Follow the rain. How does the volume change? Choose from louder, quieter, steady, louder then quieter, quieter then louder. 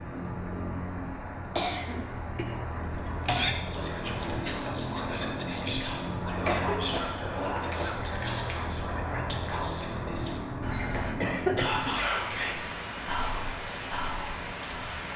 steady.